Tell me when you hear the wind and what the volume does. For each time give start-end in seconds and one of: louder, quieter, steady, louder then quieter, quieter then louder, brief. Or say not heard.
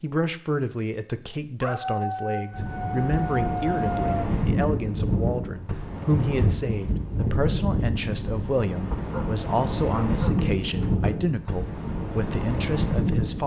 2.5-13.4 steady.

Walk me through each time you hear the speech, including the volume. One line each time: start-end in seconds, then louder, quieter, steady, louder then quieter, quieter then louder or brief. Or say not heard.
0.0-13.4 steady.